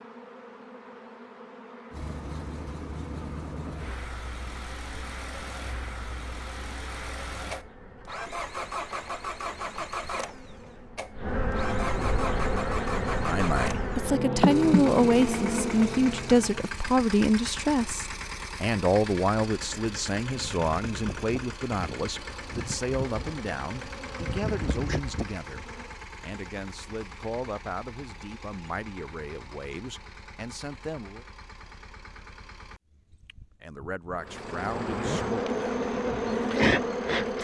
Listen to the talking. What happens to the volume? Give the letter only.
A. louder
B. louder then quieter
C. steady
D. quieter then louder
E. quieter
E.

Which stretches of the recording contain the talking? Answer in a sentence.
The talking can be heard from 13.2 to 31.2 s and from 33.6 to 37.4 s.